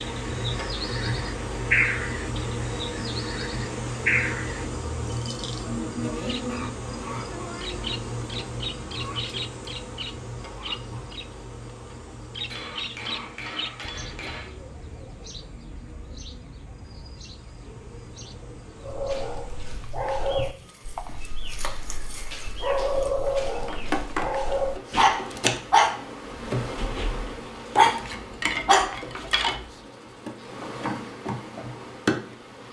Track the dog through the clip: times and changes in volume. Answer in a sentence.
You can hear the dog from 18.8 to 29.6 s, getting louder.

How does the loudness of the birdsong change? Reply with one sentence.
The loudness of the birdsong goes down.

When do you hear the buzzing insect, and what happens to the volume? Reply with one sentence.
The buzzing insect can be heard from 0.0 to 32.6 s, getting quieter then louder.